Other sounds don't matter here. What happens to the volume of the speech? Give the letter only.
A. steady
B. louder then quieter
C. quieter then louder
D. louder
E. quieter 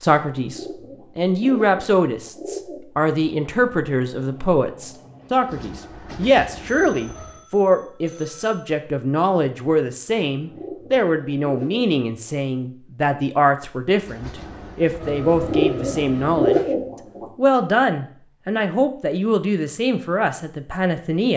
A.